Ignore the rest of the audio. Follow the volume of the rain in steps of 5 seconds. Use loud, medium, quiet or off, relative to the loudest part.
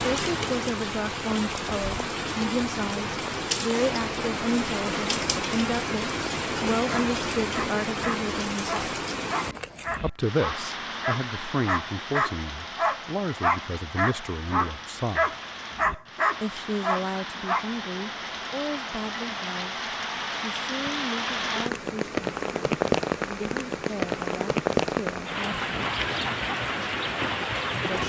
loud, loud, medium, medium, loud, loud.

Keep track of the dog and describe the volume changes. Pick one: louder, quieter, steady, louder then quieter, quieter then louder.
louder.